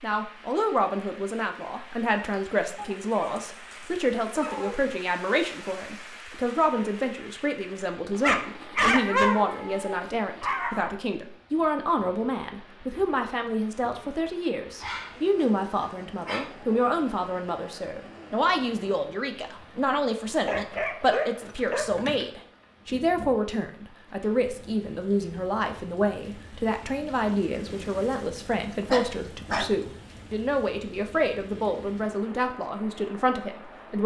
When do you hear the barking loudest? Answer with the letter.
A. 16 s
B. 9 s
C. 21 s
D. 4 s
B.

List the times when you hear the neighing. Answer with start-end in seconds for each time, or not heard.
not heard.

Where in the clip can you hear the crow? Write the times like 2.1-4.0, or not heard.
not heard.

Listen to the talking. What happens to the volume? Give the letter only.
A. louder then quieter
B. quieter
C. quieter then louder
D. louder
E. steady
E.